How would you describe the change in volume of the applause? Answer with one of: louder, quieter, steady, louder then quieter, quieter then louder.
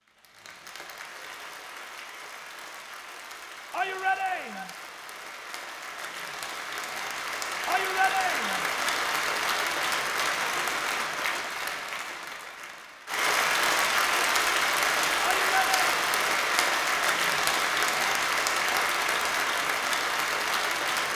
louder.